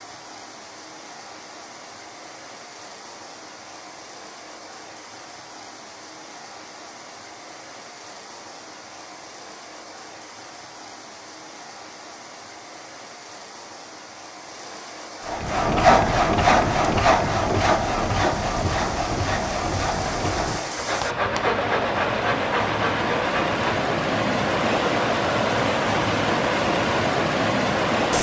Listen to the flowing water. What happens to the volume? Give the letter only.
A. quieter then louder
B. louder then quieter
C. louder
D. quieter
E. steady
C.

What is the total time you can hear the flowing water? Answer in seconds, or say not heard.
28 s.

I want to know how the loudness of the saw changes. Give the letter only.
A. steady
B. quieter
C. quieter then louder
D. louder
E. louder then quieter
B.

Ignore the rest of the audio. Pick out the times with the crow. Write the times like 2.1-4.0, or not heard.
not heard.